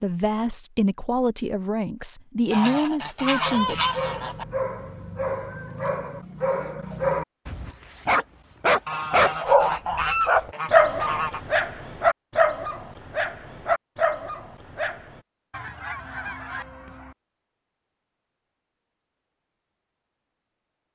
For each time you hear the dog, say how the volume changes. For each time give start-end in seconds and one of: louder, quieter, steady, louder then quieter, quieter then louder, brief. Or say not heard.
3.5-15.2 louder then quieter.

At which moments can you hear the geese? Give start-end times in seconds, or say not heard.
2.5-4.5, 8.8-11.4, 15.5-17.1.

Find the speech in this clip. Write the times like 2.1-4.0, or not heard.
0.0-3.8.